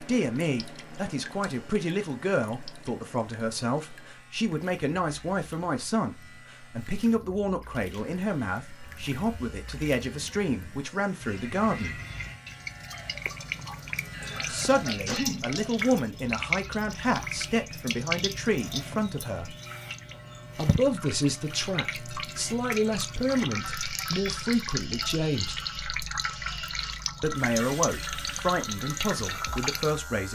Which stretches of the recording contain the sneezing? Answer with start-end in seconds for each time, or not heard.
13.7-15.4.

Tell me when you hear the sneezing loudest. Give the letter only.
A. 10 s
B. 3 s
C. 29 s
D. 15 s
D.